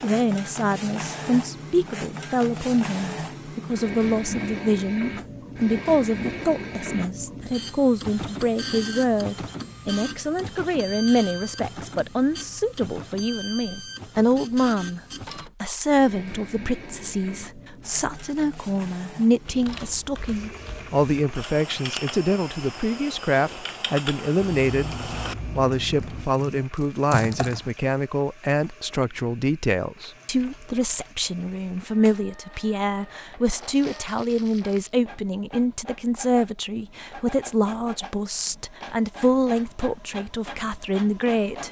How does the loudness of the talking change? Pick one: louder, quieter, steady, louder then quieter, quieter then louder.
steady.